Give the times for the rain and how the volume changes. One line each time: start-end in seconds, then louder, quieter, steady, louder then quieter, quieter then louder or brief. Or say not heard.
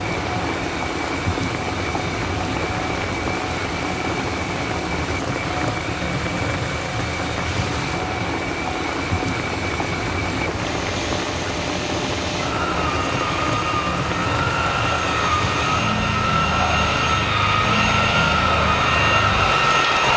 0.0-20.1 steady.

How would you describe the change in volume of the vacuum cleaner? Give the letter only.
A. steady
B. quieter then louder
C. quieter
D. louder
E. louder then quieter
D.